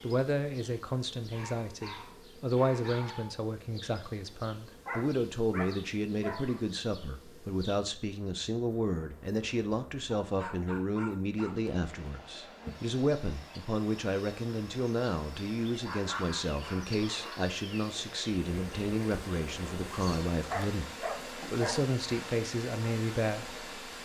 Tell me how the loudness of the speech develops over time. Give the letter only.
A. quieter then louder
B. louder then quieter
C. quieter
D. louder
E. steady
E.